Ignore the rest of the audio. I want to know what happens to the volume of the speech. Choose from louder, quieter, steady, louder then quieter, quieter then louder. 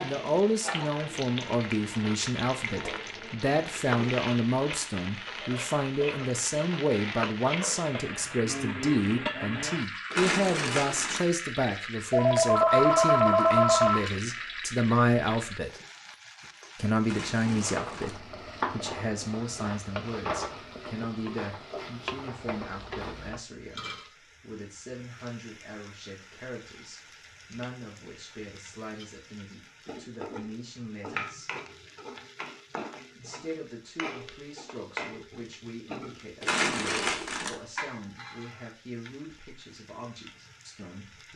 quieter.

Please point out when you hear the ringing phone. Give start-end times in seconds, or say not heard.
12.1-14.1.